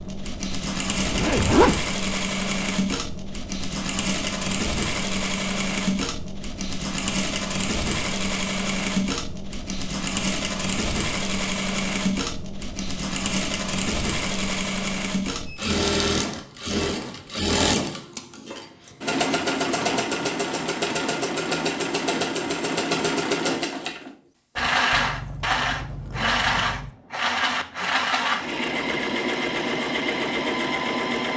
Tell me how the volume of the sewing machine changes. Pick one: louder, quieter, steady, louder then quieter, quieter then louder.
steady.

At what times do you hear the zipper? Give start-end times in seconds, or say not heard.
0.9-1.9, 16.4-17.3, 24.9-26.9.